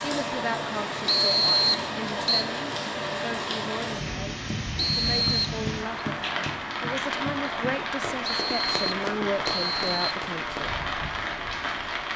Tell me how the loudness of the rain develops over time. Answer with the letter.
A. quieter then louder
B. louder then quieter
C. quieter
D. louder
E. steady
E.